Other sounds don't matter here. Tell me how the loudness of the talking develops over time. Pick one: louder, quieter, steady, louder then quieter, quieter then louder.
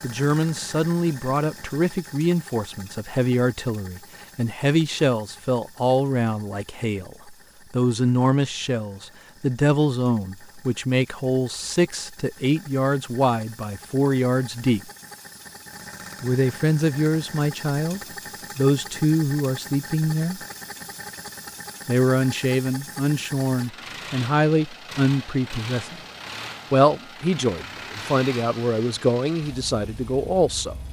steady.